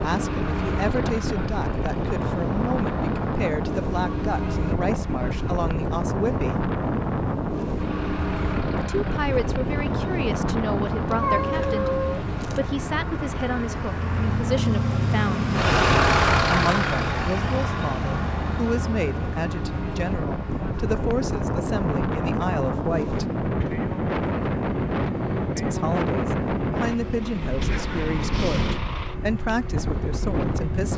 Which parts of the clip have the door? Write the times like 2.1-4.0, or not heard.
not heard.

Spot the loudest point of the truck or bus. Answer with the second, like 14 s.
16 s.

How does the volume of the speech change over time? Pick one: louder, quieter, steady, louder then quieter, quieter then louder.
steady.